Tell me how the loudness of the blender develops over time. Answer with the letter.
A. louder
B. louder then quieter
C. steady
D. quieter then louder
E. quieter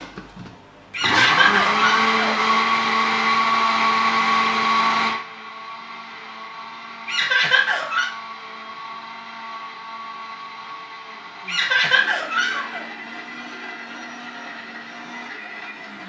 E.